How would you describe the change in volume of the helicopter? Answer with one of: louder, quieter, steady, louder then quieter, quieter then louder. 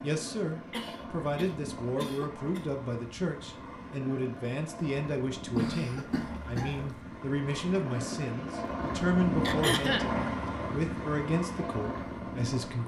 louder.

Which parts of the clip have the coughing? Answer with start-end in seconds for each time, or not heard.
0.7-2.6, 5.5-7.0, 9.4-10.1.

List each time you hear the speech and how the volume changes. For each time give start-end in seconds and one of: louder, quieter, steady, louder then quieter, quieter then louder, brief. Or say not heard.
0.0-12.8 steady.